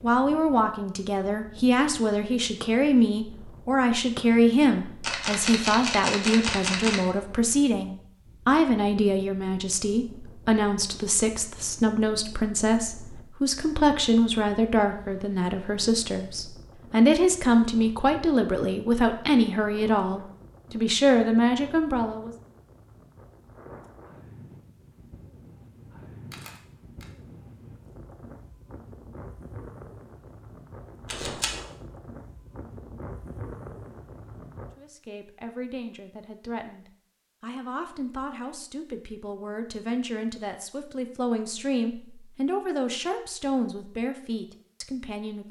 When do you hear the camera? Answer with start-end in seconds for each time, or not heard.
5.0-7.0, 26.3-27.1, 31.1-31.6.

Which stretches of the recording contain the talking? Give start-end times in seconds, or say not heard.
0.0-22.3, 34.8-45.4.